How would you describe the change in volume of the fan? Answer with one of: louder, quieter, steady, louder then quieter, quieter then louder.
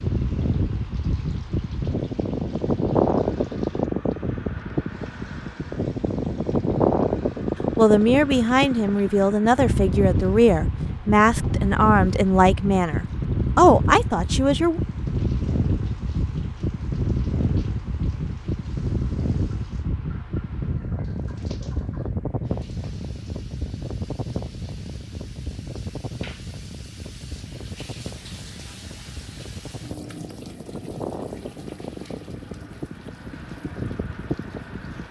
quieter.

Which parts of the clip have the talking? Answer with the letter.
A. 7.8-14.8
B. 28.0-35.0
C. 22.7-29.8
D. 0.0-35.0
A.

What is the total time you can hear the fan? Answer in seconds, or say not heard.
35 s.